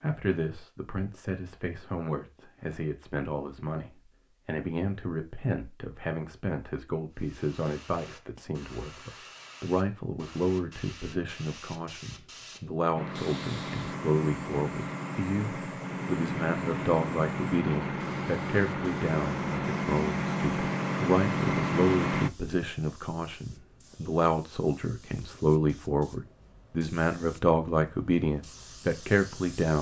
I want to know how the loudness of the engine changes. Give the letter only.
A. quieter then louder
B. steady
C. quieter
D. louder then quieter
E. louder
E.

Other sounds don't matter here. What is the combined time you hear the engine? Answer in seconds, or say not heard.
9 s.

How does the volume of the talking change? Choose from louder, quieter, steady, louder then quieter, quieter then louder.
louder.